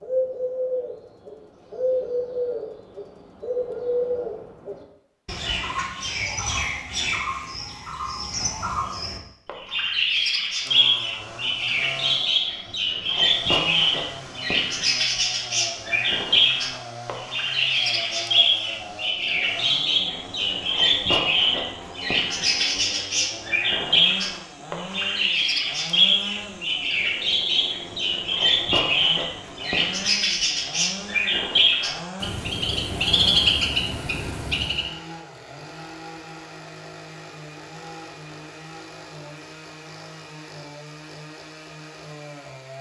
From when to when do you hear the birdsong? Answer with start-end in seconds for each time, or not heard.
0.0-34.9.